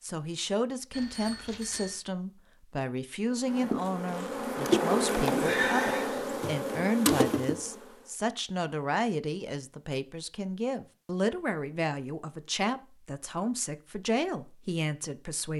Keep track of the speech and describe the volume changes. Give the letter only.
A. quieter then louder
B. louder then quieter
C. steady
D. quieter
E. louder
C.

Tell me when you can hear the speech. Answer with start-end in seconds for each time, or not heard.
0.0-15.5.